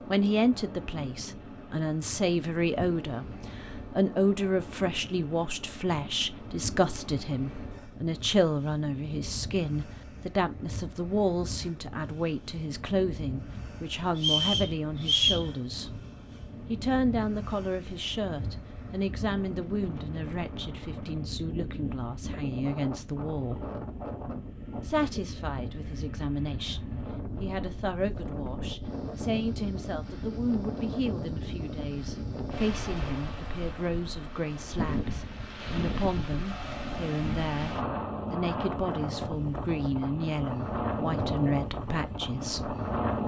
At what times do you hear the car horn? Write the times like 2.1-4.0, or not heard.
not heard.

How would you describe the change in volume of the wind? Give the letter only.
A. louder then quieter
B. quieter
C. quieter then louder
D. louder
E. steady
D.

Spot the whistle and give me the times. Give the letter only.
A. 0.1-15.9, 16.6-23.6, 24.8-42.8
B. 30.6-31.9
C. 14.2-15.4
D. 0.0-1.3
C.